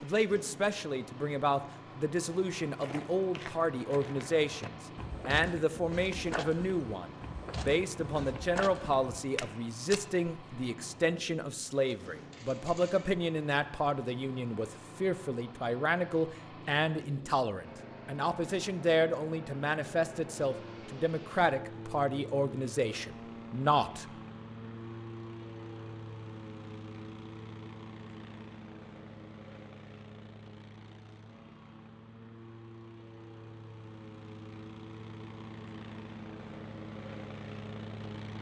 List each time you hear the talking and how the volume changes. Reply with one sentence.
You can hear the talking from 0.0 to 24.1 s, at a steady volume.